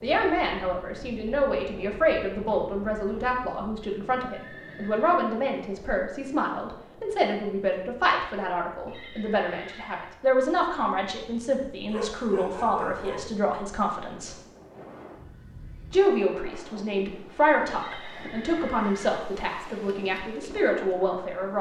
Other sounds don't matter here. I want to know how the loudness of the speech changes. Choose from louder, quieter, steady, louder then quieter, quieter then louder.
steady.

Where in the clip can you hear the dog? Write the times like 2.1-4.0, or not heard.
11.9-13.3.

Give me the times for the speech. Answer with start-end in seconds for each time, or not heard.
0.0-14.3, 15.9-21.5.